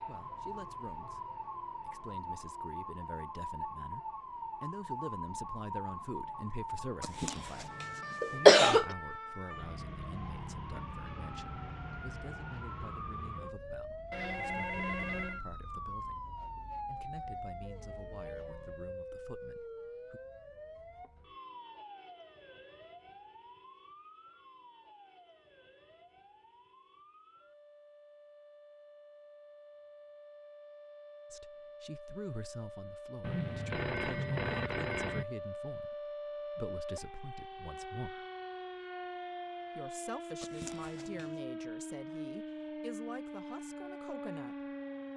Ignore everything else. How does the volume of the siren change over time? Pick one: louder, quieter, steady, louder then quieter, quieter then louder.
quieter then louder.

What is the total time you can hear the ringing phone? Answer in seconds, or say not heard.
3 s.